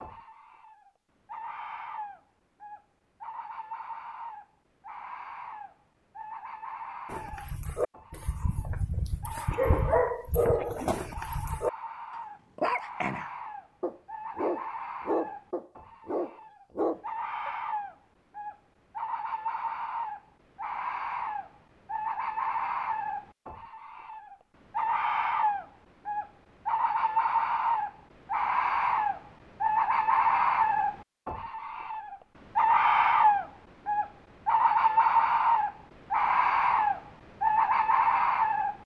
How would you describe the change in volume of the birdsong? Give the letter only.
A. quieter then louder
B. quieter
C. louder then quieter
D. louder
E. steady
D.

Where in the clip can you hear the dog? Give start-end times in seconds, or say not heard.
7.0-17.5.